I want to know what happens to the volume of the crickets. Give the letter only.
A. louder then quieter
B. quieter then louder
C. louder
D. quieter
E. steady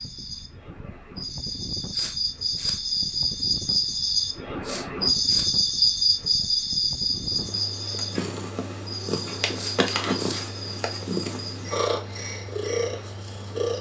A.